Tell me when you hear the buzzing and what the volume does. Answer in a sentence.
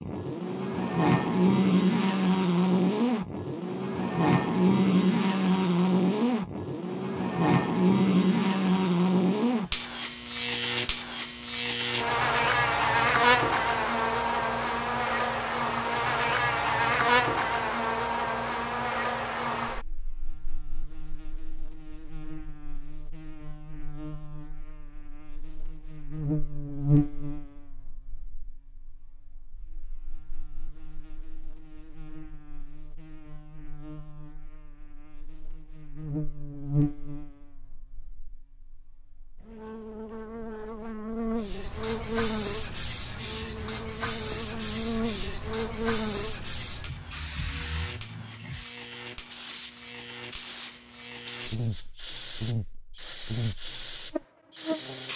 You can hear the buzzing from 0.0 to 55.1 s, getting quieter.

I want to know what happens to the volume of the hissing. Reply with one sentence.
The volume of the hissing stays about the same.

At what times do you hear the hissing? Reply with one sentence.
You can hear the hissing from 41.4 to 55.1 s.